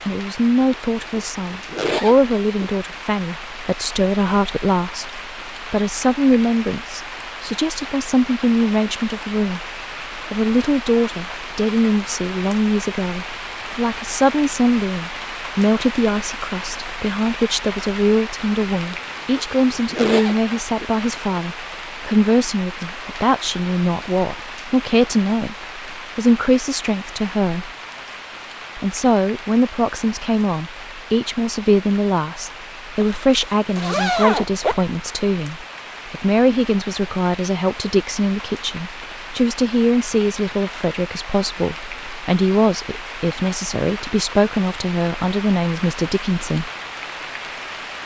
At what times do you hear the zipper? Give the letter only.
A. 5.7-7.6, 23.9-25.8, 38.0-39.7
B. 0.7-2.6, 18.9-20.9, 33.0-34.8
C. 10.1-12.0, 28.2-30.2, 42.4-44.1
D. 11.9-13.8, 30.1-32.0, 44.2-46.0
B.